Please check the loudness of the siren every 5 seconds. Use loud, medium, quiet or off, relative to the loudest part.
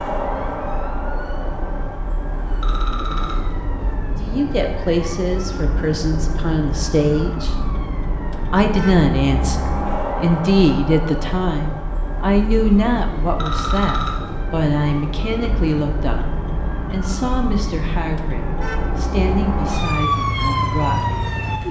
medium, medium, medium, medium, loud.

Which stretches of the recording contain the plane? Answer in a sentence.
The plane can't be heard in this clip.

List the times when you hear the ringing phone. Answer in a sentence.
The ringing phone can be heard from 2.6 to 3.6 s and from 13.3 to 14.4 s.